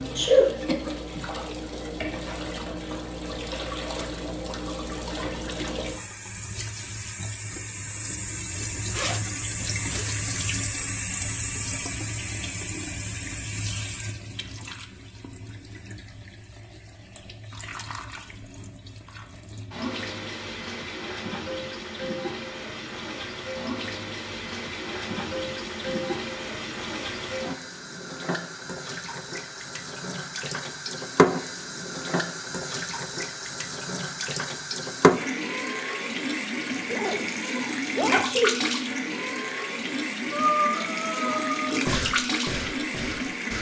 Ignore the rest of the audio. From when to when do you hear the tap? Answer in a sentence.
You can hear the tap from 0.0 to 43.5 s.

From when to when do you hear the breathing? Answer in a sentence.
You can hear the breathing from 40.3 to 43.5 s.